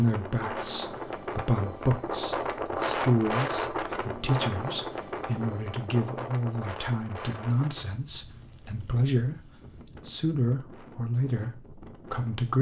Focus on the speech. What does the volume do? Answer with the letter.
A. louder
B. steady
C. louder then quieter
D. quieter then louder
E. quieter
B.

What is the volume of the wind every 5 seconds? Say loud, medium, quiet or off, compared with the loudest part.
loud, medium, quiet.